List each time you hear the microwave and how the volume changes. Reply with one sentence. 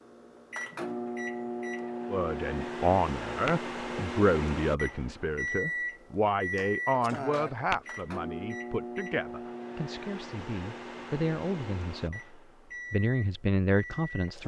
The microwave can be heard from 0.0 to 14.4 s, getting quieter.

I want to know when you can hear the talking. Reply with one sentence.
The talking can be heard from 2.1 to 14.4 s.